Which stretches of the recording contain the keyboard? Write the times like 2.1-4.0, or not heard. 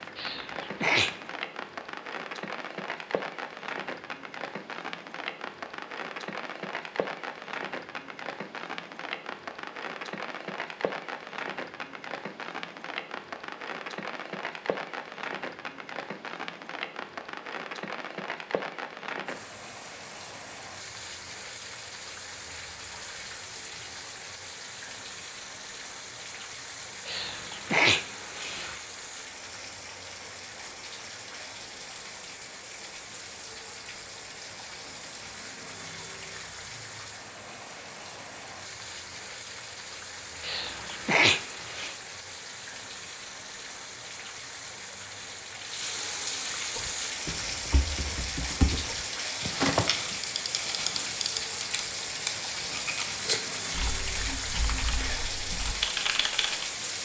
46.8-56.6.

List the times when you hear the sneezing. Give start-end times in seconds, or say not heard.
0.1-1.3, 27.1-28.8, 40.4-42.0.